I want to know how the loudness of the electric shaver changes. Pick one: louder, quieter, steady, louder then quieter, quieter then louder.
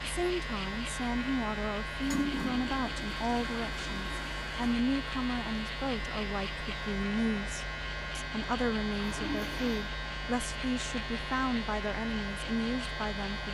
steady.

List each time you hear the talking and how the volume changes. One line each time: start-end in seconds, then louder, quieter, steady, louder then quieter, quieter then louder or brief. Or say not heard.
0.0-13.5 steady.